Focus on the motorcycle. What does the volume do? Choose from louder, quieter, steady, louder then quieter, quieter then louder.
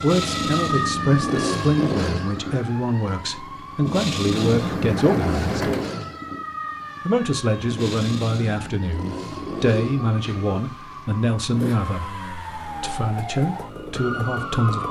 quieter.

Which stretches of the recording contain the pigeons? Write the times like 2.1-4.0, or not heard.
4.3-5.9, 9.3-10.6.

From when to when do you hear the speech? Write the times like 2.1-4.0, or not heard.
0.0-5.5, 7.0-12.1, 12.8-14.8.